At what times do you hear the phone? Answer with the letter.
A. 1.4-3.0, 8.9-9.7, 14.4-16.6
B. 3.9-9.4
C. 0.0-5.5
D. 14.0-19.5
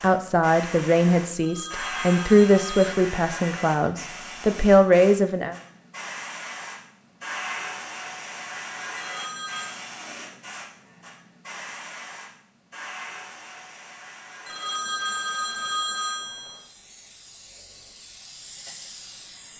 A.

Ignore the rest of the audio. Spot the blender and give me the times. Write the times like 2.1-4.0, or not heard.
not heard.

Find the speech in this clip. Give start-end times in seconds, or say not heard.
0.0-5.5.